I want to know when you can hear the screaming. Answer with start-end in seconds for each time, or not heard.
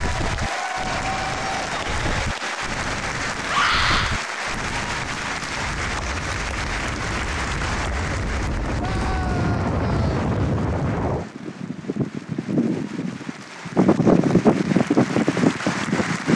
3.5-4.2, 8.8-10.2.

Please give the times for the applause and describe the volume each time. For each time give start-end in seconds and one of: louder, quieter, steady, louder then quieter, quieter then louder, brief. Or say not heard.
0.0-16.3 quieter then louder.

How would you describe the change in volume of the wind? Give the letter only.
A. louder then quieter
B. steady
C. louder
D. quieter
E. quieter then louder
C.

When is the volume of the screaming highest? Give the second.
4 s.